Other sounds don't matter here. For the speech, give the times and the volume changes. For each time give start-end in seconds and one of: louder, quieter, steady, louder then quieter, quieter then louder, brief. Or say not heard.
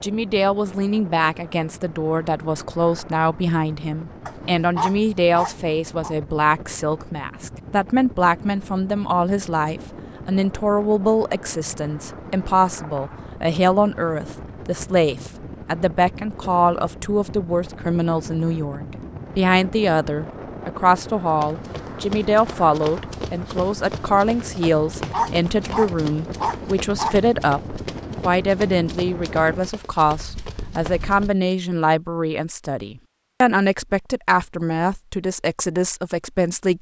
0.0-36.7 steady.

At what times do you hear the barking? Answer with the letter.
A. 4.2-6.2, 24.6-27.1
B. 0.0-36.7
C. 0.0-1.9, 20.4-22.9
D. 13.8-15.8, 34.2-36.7
A.